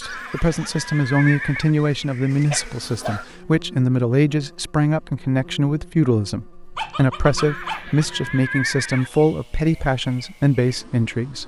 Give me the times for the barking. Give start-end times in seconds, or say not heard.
2.5-3.2, 6.8-8.4.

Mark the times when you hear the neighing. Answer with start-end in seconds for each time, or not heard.
0.0-1.7, 7.3-9.1.